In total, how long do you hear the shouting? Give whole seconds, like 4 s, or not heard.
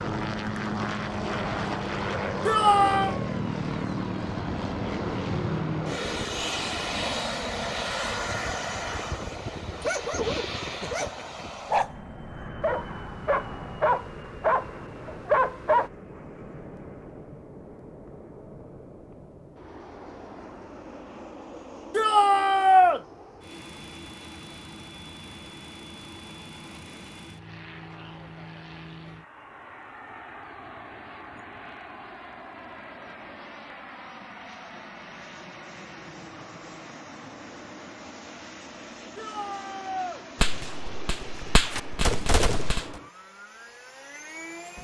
3 s.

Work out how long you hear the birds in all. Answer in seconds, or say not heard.
not heard.